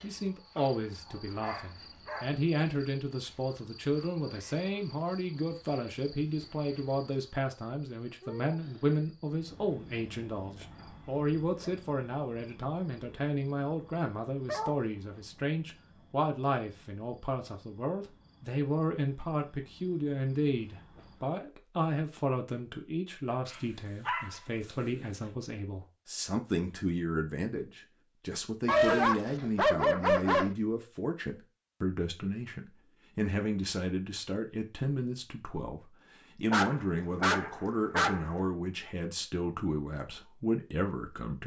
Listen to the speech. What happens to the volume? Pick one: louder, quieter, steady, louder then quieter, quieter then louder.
steady.